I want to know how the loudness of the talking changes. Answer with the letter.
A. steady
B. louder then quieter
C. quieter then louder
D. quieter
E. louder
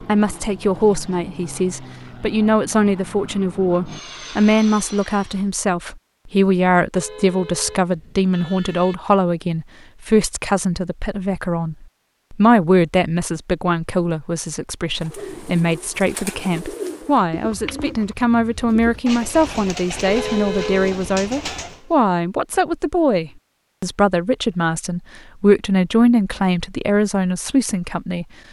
A.